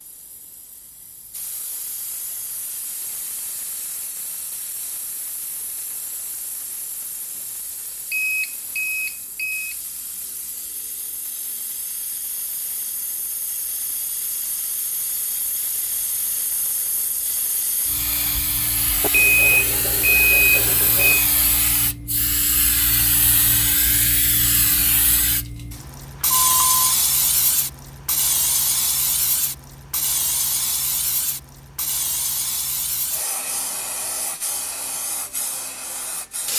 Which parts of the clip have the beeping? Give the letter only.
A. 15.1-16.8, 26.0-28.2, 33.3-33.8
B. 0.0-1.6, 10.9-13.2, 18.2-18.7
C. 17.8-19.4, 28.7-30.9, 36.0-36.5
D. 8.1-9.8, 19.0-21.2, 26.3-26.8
D.